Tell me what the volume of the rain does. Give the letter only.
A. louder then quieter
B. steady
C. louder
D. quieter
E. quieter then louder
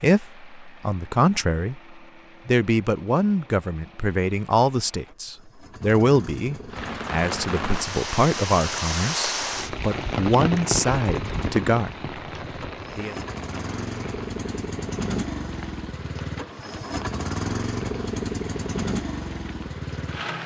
D.